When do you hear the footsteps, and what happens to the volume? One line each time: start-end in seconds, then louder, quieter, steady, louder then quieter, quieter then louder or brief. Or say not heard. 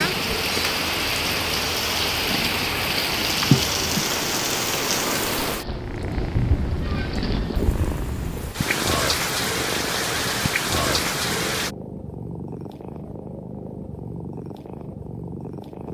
not heard.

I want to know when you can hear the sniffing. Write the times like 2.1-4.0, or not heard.
3.5-4.0.